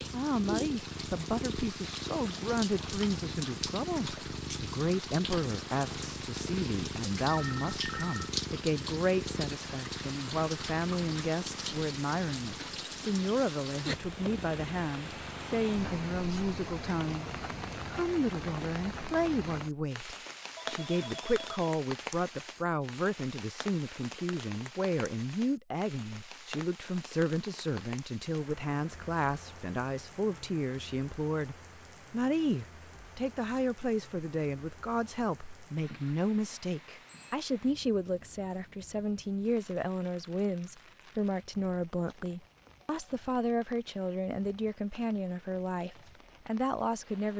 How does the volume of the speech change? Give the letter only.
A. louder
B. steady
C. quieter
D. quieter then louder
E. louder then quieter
B.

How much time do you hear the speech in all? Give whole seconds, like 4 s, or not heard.
47 s.